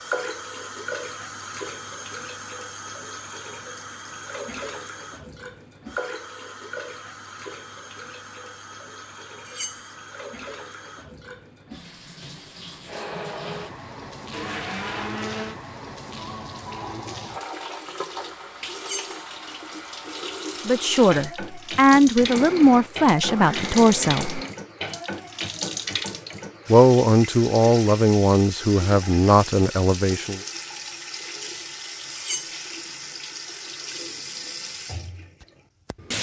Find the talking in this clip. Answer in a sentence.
You can hear the talking from 20.6 to 24.4 s and from 26.7 to 30.4 s.